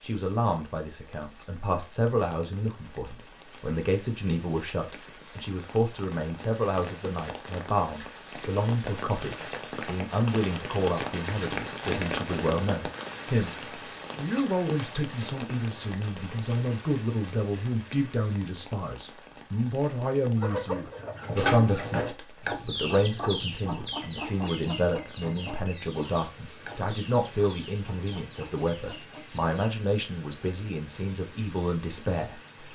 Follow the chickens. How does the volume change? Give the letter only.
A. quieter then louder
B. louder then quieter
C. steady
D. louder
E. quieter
E.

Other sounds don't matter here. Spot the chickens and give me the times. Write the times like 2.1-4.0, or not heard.
20.4-29.7.